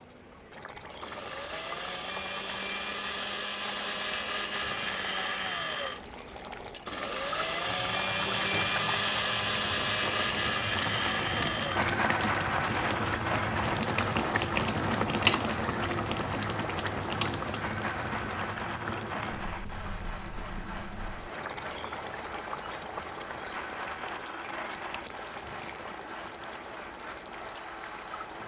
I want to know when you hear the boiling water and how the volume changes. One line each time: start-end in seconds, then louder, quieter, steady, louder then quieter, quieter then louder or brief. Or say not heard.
0.0-28.4 louder then quieter.